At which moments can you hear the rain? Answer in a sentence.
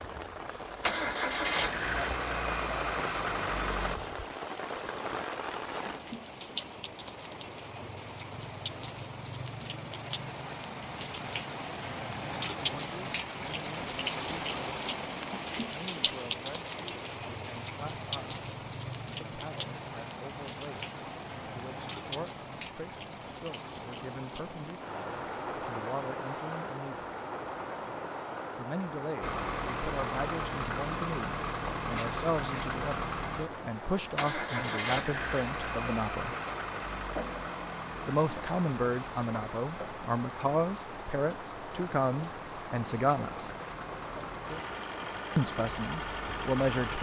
The rain can be heard from 0.0 to 46.9 s.